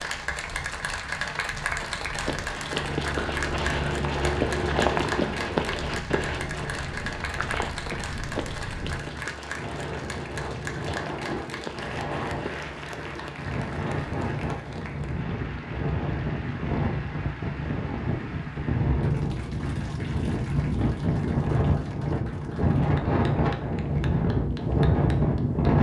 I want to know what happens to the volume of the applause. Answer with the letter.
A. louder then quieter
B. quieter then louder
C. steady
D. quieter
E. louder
D.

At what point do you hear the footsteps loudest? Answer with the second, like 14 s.
5 s.